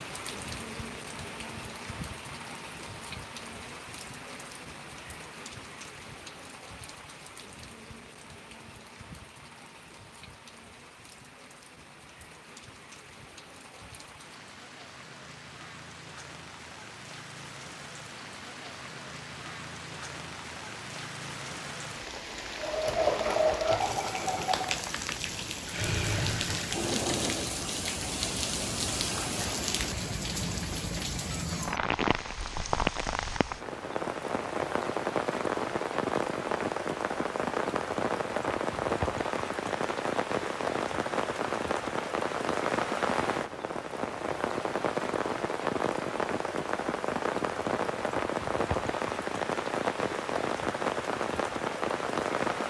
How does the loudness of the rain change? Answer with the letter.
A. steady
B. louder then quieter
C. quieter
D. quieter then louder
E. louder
E.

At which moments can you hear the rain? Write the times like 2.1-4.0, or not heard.
0.0-52.6.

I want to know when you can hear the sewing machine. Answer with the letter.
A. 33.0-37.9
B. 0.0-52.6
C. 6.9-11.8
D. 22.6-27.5
D.